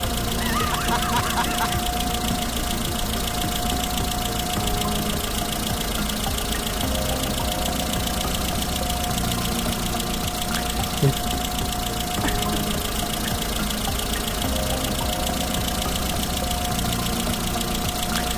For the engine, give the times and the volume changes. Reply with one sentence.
The engine can be heard from 0.0 to 18.3 s, at a steady volume.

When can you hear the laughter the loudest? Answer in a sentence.
The loudest moment of the laughter is at 1 second.